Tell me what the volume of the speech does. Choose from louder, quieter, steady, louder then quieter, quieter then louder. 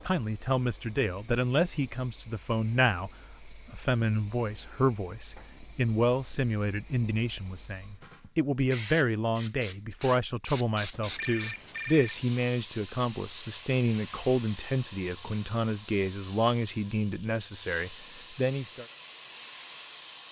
steady.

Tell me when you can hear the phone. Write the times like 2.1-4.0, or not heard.
10.9-12.2.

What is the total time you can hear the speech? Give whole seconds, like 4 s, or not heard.
19 s.